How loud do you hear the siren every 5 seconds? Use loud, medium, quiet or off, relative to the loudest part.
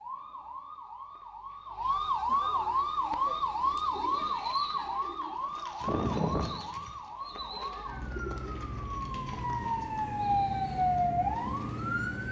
loud, medium, loud.